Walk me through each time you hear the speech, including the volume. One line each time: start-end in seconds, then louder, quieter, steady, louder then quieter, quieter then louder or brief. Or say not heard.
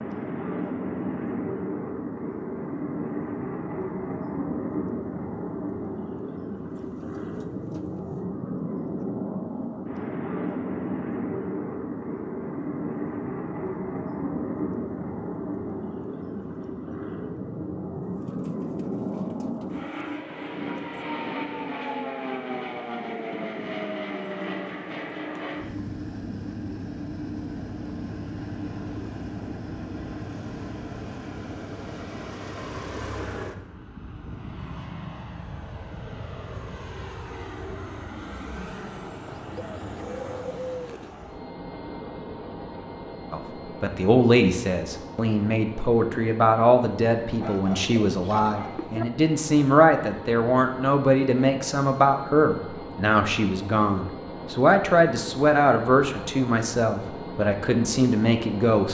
43.3-58.8 steady.